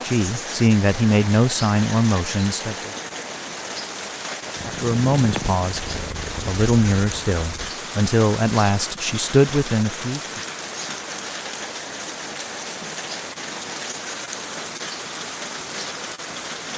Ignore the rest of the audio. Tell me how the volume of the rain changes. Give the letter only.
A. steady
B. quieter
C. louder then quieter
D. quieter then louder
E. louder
A.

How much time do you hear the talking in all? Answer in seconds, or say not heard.
9 s.